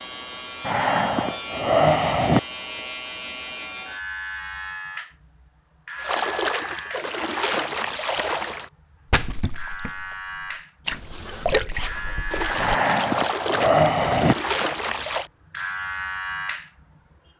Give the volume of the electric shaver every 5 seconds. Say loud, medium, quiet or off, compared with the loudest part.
loud, medium, loud, loud.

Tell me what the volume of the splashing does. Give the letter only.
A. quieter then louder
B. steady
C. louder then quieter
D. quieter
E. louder
B.